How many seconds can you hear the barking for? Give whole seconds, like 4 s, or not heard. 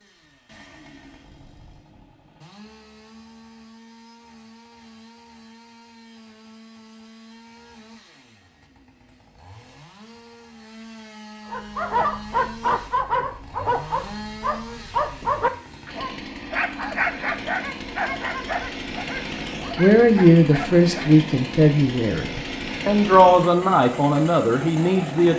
9 s.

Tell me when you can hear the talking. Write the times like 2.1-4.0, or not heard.
19.8-25.3.